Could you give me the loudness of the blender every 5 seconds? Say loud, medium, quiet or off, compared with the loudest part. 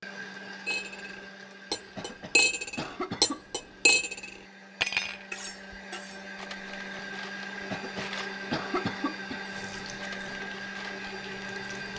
medium, loud, loud.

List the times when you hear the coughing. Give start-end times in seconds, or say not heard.
1.9-3.5, 7.7-9.5.